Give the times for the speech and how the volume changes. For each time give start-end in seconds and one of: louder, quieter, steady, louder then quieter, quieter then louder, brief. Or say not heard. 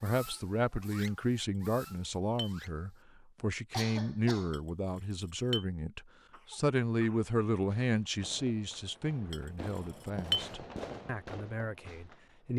0.0-12.5 quieter.